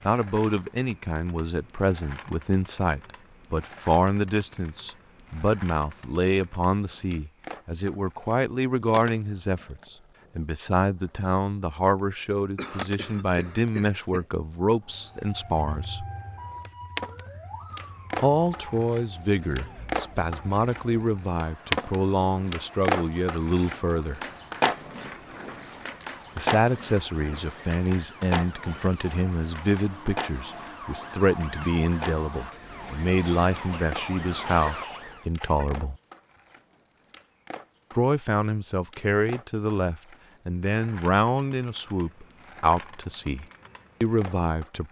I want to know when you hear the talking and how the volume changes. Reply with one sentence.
The talking can be heard from 0.1 to 16.1 s, at a steady volume; from 18.2 to 24.2 s, at a steady volume; from 26.4 to 36.0 s, at a steady volume; and from 37.9 to 44.8 s, at a steady volume.